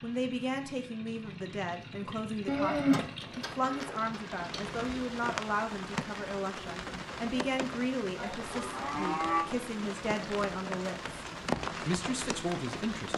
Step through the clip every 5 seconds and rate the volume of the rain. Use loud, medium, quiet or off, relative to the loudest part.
medium, loud, loud.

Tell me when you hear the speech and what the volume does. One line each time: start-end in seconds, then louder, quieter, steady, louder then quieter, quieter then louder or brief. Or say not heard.
0.0-13.1 steady.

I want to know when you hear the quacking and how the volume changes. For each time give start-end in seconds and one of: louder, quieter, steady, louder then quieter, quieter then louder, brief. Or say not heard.
not heard.